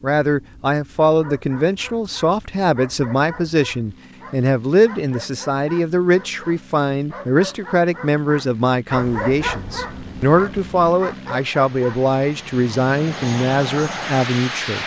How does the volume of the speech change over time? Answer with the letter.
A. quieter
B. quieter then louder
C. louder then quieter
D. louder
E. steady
E.